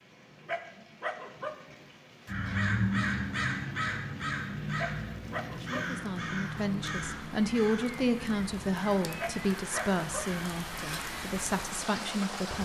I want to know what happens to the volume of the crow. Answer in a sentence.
The loudness of the crow goes down.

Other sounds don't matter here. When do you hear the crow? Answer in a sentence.
The crow can be heard from 2.2 to 11.1 s.